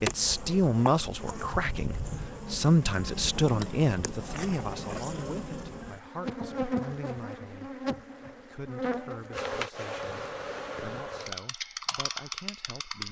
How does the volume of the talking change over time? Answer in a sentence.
The volume of the talking goes down.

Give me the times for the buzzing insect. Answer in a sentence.
The buzzing insect can be heard from 0.0 to 13.0 s.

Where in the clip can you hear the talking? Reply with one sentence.
The talking can be heard from 0.0 to 13.0 s.